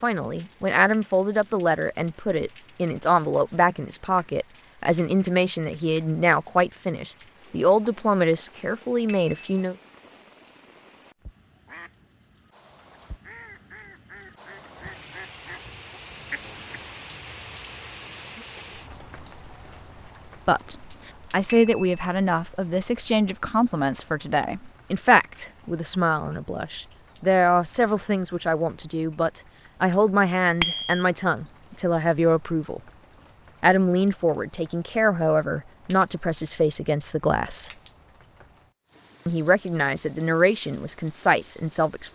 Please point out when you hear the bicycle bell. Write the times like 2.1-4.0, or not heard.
9.1-9.6, 21.4-22.0, 30.6-31.1.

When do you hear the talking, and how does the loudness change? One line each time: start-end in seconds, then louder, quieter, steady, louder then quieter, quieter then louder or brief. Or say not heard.
0.0-9.8 steady
20.4-32.8 steady
33.6-37.7 steady
39.2-42.1 brief.